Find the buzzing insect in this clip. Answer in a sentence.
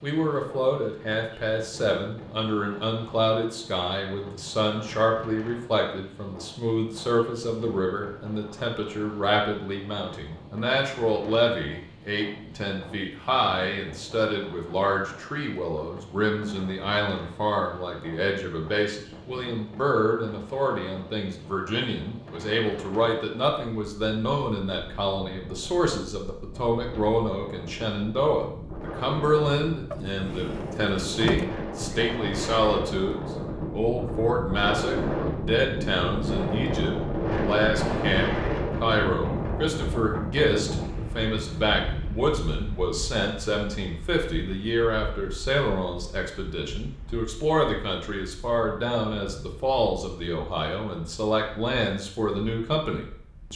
You can't hear the buzzing insect here.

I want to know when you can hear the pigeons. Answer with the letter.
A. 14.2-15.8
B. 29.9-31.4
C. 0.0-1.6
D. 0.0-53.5
B.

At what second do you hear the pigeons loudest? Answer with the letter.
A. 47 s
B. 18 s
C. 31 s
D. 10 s
C.